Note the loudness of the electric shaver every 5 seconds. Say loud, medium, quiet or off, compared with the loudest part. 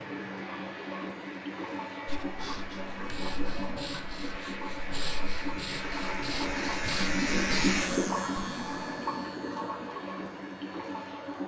medium, loud, quiet.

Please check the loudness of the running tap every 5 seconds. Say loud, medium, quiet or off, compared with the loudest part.
medium, loud, medium.